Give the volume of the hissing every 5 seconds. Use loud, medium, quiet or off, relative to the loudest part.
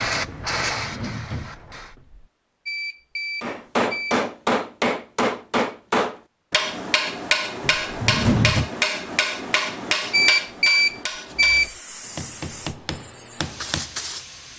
loud, off, medium.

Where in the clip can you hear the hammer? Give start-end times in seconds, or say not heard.
3.4-13.9.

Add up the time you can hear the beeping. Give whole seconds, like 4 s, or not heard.
3 s.